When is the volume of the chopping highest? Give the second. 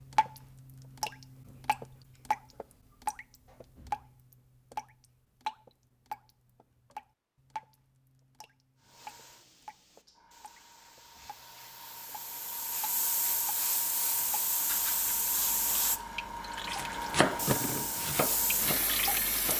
17 s.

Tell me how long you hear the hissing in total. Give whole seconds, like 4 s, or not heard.
11 s.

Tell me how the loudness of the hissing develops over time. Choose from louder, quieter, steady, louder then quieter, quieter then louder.
louder.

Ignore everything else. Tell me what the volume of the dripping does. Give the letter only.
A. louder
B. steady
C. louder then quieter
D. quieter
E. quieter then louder
E.